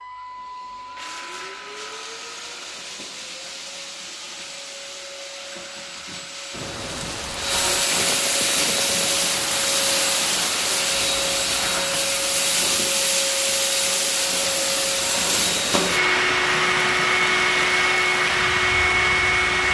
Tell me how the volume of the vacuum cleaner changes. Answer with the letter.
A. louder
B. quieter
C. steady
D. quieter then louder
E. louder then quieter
A.